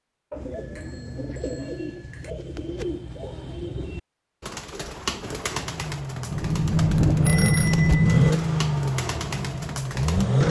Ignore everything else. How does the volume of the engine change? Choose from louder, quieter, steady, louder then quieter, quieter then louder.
louder then quieter.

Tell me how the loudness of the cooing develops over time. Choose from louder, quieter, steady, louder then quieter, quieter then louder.
steady.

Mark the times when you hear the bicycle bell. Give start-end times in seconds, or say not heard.
0.3-2.3, 6.3-8.3.